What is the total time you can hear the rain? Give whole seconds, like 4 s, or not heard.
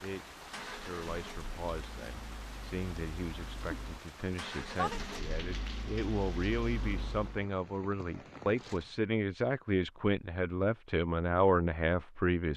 9 s.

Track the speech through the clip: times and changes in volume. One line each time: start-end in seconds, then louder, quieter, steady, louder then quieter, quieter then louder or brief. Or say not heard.
0.0-12.5 louder.